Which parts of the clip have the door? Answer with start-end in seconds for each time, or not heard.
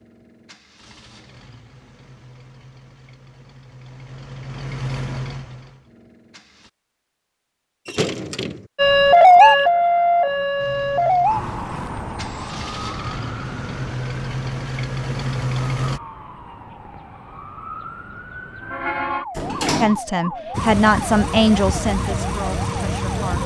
7.8-8.7, 19.4-20.0.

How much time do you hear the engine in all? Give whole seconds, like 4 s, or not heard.
15 s.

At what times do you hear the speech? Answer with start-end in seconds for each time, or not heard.
19.8-23.4.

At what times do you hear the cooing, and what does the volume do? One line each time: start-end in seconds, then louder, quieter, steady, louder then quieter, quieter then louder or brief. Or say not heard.
not heard.